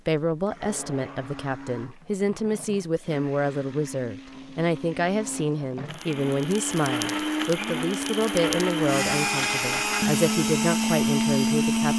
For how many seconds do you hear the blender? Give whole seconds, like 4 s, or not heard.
12 s.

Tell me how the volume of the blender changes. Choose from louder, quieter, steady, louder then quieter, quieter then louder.
louder.